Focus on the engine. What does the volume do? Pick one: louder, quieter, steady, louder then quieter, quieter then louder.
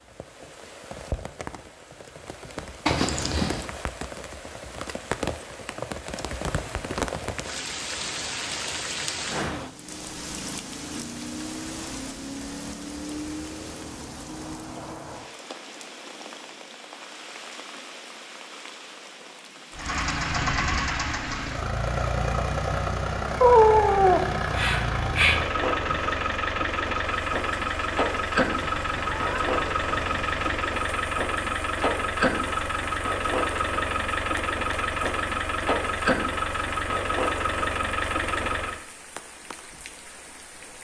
steady.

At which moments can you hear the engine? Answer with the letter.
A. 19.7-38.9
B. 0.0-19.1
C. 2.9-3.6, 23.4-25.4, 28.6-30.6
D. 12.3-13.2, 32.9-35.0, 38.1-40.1
A.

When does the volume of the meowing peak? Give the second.
24 s.